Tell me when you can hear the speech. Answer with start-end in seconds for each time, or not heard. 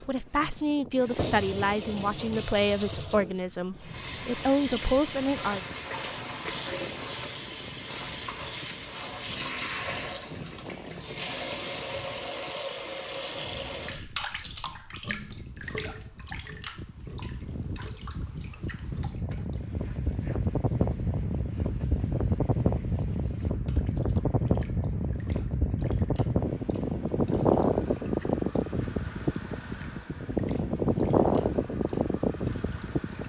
0.1-5.6.